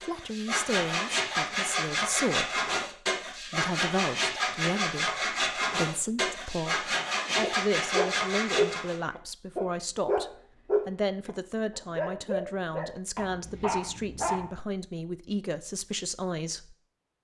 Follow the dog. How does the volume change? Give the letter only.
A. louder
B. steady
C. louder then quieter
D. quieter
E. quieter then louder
D.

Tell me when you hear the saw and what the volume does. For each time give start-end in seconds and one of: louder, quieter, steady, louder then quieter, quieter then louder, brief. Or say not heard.
0.0-9.0 steady.